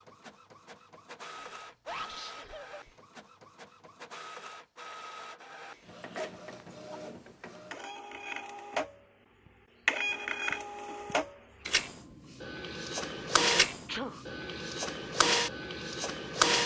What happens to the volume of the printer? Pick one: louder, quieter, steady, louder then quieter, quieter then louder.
louder.